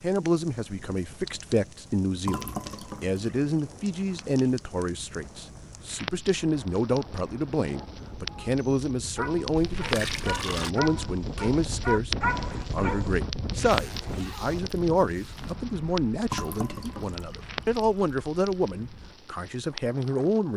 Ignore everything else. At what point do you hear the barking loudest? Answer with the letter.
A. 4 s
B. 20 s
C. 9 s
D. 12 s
D.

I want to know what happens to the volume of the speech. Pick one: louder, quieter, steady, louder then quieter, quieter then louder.
steady.